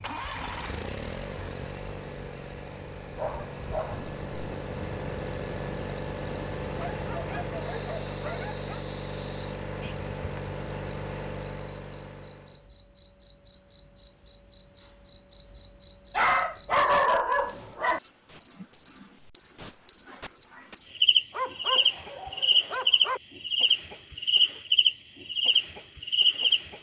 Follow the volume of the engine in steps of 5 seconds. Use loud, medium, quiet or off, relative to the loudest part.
loud, loud, loud, off, off, off.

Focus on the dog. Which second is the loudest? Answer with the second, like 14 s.
17 s.